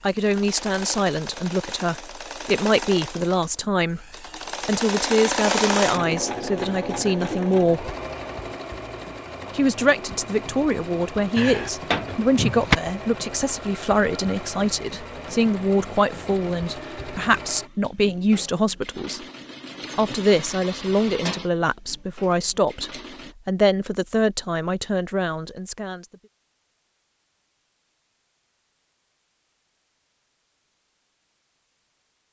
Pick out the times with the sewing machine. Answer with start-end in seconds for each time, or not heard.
0.0-23.4.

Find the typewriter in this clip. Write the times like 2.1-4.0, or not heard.
not heard.